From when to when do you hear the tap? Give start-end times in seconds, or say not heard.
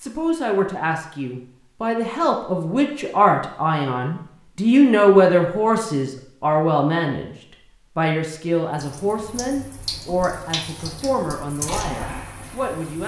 8.7-13.0.